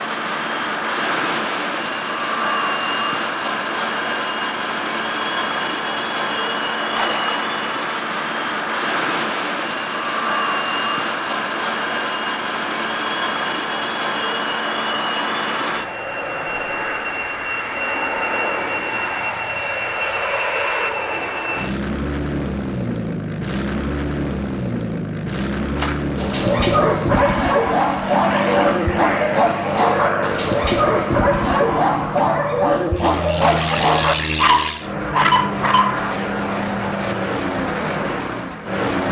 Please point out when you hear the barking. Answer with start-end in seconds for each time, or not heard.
25.8-36.0.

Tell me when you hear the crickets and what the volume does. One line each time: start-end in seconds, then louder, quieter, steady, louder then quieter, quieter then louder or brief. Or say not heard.
not heard.